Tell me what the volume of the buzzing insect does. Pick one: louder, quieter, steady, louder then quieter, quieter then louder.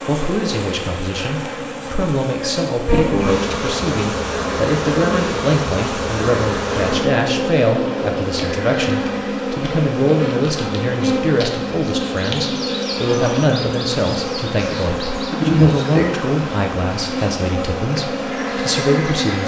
steady.